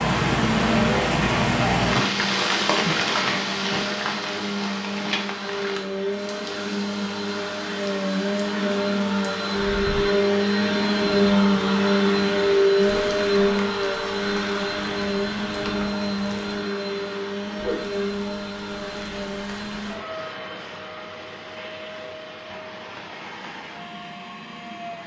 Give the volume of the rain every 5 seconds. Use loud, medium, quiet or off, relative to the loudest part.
loud, quiet, quiet, quiet, off.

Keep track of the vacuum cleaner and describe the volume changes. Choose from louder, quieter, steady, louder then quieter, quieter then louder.
louder then quieter.